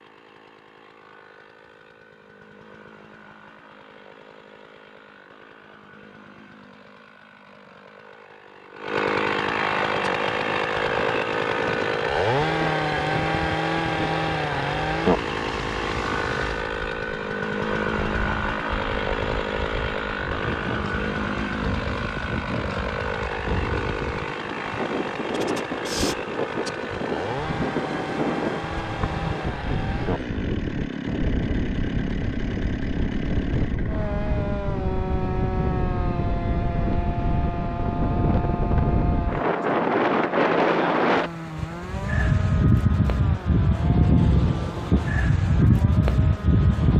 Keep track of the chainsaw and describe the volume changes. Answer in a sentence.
The volume of the chainsaw goes up, then down.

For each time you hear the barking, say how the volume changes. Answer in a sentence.
You can't hear the barking here.